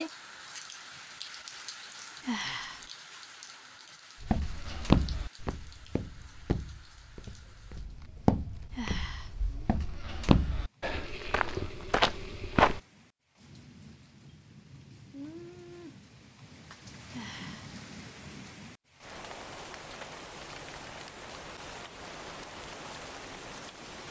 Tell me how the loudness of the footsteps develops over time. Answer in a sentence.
The loudness of the footsteps goes down, then up.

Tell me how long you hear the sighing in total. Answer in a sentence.
The sighing can be heard for 2 seconds in total.